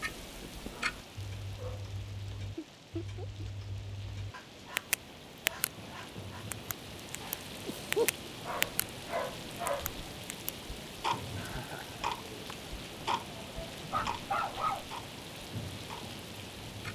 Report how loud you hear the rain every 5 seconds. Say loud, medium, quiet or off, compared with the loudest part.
medium, loud, loud, loud.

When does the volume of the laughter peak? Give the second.
8 s.